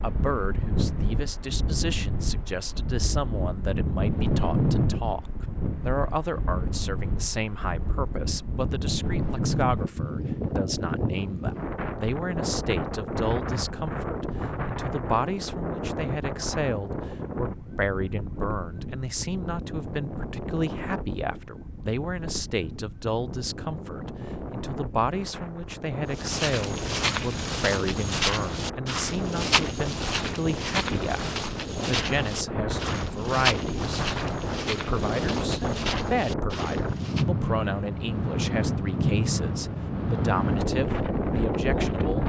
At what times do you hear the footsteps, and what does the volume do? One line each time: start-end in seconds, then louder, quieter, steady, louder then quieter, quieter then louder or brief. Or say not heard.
26.1-37.2 quieter.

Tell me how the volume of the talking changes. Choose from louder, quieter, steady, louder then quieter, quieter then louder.
steady.